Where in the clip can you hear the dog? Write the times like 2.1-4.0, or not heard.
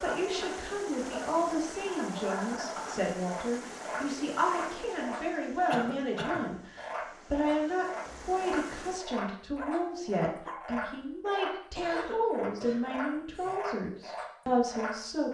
9.6-10.8.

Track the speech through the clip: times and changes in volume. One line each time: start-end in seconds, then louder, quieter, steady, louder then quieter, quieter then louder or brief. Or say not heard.
0.0-15.2 steady.